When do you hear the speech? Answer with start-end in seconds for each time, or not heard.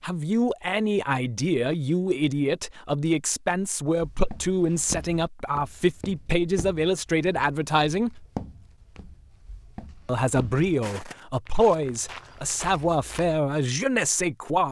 0.0-8.2, 10.1-14.6.